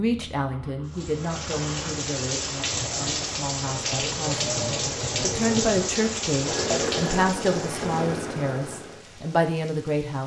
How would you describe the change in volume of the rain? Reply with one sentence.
The volume of the rain goes down.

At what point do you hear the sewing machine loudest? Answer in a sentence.
The volume of the sewing machine peaks at 7 seconds.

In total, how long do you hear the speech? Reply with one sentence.
You can hear the speech for 10 seconds altogether.